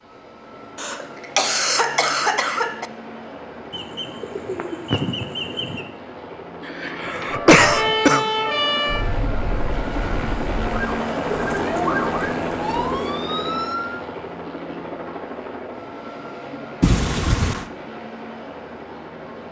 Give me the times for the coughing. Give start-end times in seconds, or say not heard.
0.8-2.9, 6.7-8.3, 16.8-17.6.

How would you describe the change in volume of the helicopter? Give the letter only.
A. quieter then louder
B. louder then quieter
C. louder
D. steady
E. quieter
B.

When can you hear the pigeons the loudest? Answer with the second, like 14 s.
5 s.